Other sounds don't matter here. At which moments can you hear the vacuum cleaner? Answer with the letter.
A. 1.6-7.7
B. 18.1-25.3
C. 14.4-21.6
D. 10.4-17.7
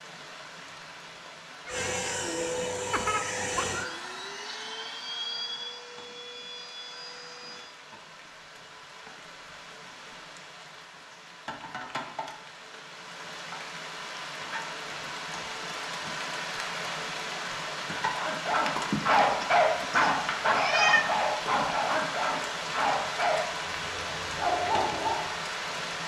A.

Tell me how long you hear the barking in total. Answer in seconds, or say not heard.
7 s.